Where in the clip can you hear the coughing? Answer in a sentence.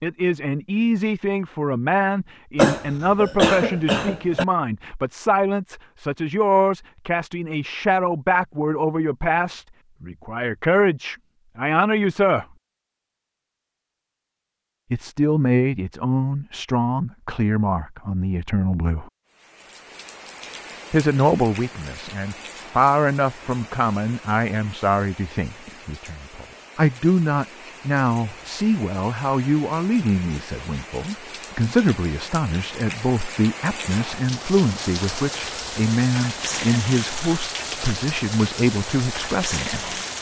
You can hear the coughing from 2.5 to 4.5 s.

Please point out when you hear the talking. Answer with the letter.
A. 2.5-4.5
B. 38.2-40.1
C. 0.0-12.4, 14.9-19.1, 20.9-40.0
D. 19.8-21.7
C.